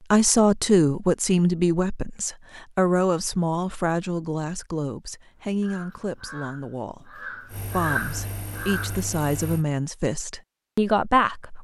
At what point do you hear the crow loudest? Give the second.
8 s.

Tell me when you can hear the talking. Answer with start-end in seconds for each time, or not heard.
0.1-11.5.